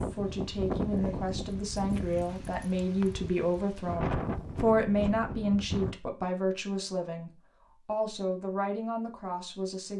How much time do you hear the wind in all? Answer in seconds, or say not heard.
6 s.